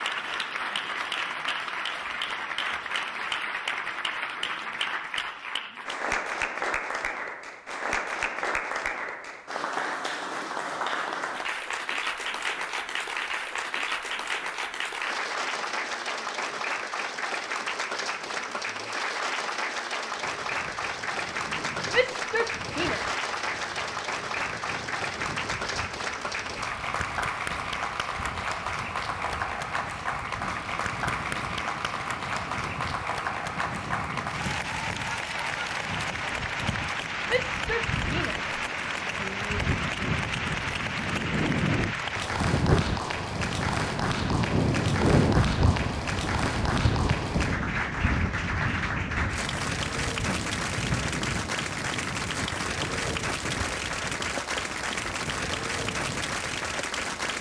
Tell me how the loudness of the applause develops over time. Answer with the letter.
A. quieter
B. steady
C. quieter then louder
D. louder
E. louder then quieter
B.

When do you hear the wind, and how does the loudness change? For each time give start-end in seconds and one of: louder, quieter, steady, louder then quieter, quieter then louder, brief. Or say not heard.
20.1-57.3 louder then quieter.